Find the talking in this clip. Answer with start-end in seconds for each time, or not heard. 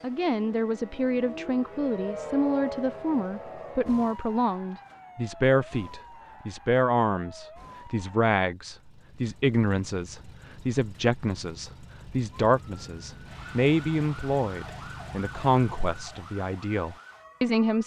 0.0-17.8.